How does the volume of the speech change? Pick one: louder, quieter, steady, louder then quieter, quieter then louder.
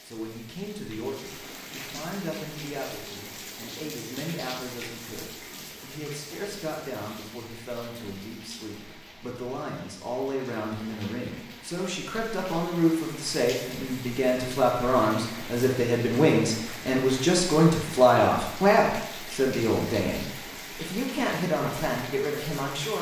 louder.